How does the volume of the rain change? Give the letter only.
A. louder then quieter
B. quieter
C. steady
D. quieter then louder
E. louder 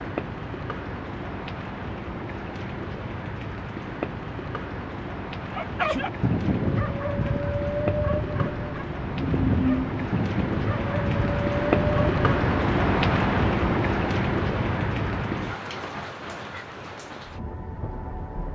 A.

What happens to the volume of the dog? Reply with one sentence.
The volume of the dog stays about the same.